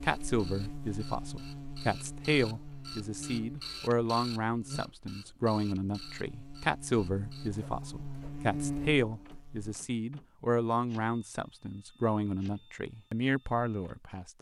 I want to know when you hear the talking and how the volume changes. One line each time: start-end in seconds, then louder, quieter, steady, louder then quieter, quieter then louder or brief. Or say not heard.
0.0-14.3 steady.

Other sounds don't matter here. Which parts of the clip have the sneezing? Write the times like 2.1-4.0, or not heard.
not heard.